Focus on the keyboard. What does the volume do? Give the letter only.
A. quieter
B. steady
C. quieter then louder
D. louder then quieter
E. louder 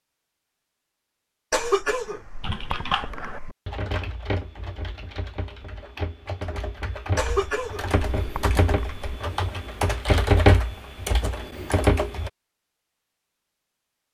C.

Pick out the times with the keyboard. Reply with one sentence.
The keyboard can be heard from 2.4 to 12.3 s.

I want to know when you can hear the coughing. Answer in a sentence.
You can hear the coughing from 1.5 to 3.5 s and from 7.2 to 9.2 s.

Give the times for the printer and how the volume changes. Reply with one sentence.
The printer can't be heard in this clip.